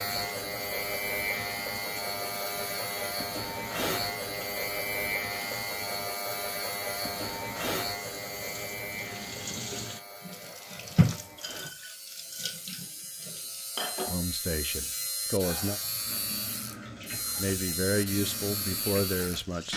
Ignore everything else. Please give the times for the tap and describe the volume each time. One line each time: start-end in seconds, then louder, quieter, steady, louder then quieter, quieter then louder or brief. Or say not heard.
0.0-19.7 louder then quieter.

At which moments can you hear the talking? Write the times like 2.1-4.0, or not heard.
14.1-15.8, 17.4-19.7.